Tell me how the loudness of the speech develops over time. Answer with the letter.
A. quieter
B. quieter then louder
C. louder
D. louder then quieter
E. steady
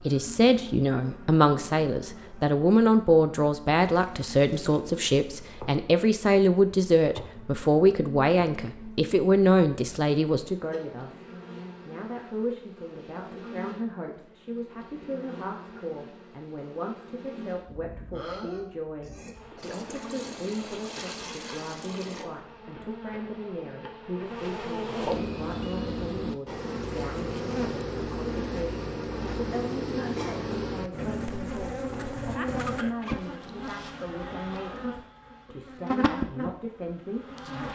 A.